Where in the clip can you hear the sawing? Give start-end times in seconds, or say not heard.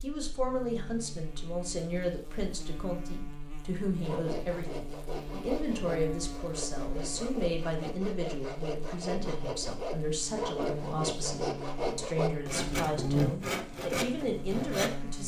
4.0-15.0.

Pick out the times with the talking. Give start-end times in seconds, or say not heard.
0.0-15.2.